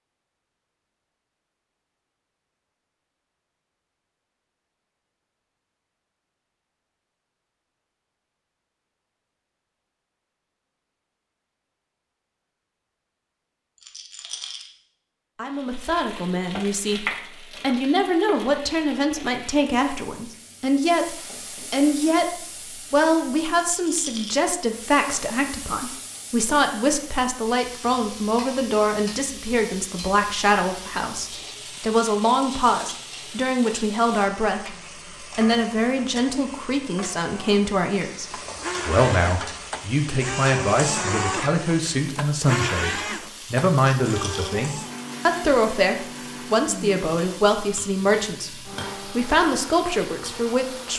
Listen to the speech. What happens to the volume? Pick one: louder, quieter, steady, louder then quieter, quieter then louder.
steady.